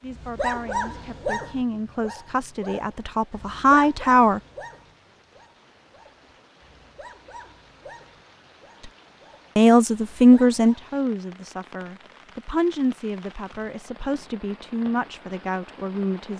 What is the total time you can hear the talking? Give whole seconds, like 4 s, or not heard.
11 s.